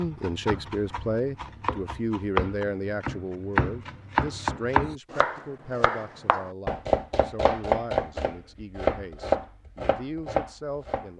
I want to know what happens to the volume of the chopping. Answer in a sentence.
The loudness of the chopping goes up.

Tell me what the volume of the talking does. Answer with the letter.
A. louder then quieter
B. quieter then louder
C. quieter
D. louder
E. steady
C.